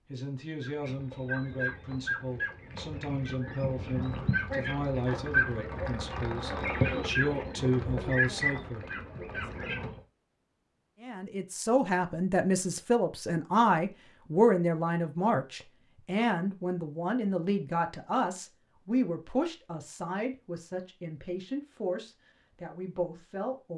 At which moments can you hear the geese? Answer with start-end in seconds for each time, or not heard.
0.6-10.0.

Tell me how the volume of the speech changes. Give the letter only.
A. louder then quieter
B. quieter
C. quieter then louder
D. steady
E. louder
A.